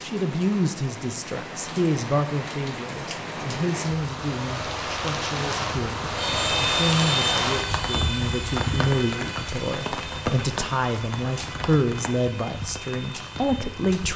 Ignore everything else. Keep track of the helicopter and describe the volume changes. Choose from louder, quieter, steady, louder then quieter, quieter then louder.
quieter.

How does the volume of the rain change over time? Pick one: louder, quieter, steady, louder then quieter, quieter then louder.
louder then quieter.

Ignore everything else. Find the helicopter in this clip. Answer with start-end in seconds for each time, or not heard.
6.2-14.1.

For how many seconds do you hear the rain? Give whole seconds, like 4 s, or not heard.
14 s.